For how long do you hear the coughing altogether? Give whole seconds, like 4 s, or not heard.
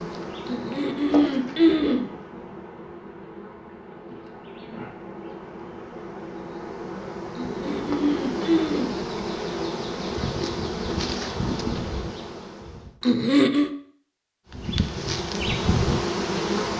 4 s.